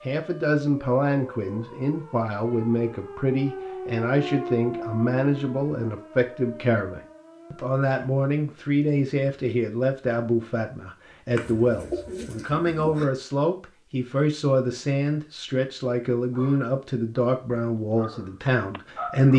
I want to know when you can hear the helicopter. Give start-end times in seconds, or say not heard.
not heard.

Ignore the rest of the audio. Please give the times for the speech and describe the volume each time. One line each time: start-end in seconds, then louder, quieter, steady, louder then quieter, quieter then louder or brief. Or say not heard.
0.1-19.3 steady.